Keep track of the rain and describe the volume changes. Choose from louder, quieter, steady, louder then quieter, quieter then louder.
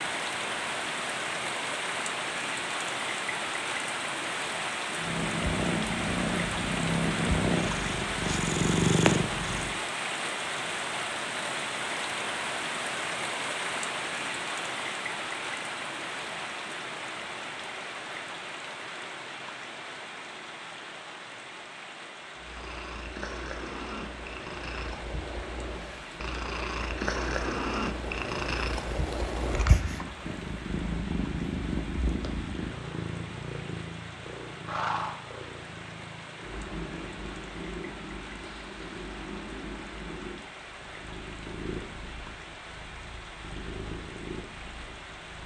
quieter.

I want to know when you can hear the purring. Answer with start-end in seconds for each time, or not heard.
5.0-9.8, 22.4-45.4.